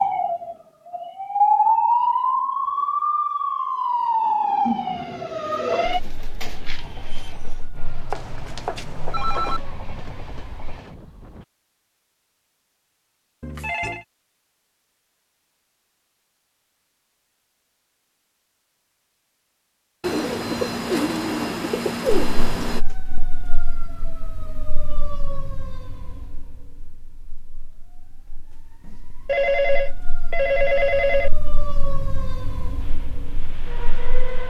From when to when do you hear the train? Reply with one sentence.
The train can be heard from 6.8 to 11.4 s and from 32.8 to 34.4 s.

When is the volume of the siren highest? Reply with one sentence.
The volume of the siren peaks at 2 seconds.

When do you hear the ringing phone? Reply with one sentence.
You can hear the ringing phone from 8.1 to 9.6 s, from 13.4 to 14.1 s and from 29.2 to 31.3 s.